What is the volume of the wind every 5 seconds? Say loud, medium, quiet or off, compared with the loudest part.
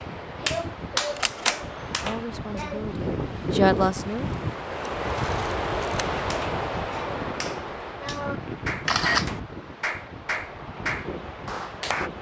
loud, loud, medium.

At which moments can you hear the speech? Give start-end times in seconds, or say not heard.
2.0-4.4.